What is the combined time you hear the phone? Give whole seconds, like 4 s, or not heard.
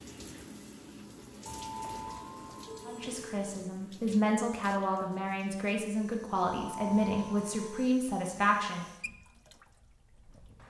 3 s.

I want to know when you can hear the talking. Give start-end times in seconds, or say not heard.
2.9-8.8.